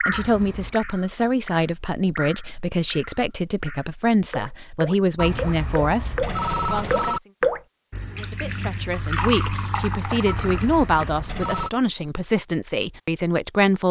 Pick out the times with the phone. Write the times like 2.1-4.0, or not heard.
0.1-0.8, 5.2-7.2, 10.2-11.7.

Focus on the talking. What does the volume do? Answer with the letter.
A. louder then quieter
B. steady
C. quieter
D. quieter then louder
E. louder
B.